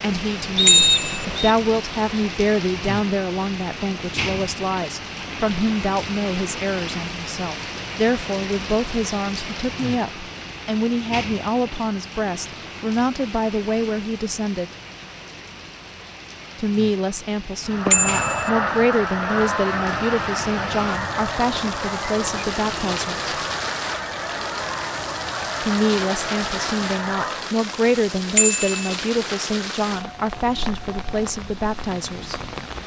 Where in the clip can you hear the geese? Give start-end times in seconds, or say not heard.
17.6-27.6.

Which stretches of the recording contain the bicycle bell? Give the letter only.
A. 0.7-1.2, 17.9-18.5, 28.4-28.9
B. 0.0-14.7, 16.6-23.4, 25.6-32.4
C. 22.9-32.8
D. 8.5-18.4
A.